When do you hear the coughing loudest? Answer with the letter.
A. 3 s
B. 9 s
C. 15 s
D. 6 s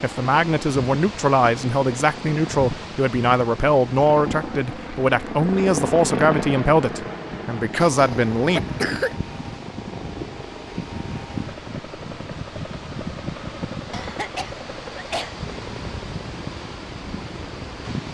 B.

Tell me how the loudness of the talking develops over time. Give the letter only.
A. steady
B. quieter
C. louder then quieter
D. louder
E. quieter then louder
A.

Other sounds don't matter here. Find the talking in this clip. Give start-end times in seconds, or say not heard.
0.0-8.7.